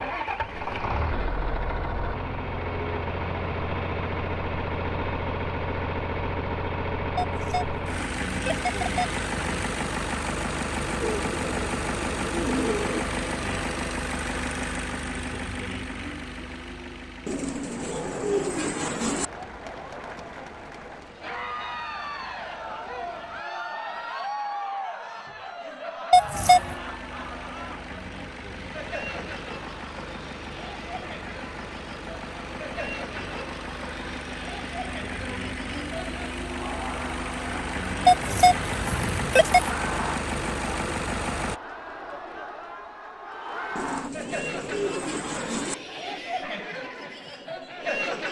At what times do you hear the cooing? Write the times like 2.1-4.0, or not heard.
11.0-13.1, 17.2-19.3, 43.8-45.8.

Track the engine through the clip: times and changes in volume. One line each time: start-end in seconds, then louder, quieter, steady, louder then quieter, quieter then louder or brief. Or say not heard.
0.0-23.4 quieter
26.3-41.6 louder.